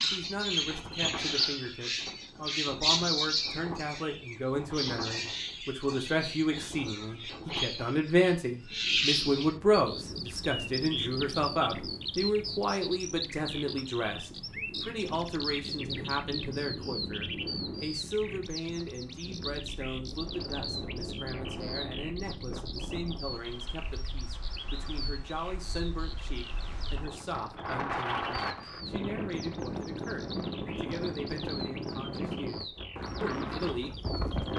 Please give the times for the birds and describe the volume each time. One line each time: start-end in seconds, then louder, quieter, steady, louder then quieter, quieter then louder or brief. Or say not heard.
0.0-34.5 quieter.